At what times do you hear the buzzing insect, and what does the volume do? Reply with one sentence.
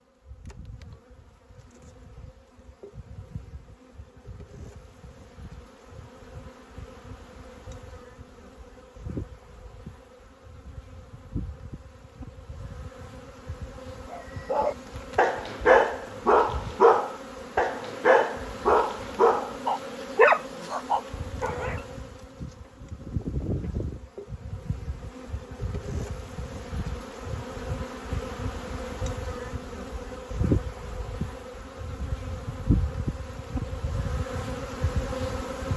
The buzzing insect can be heard from 0.0 to 35.7 s, getting louder.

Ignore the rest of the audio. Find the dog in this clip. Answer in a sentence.
You can hear the dog from 14.1 to 21.8 s.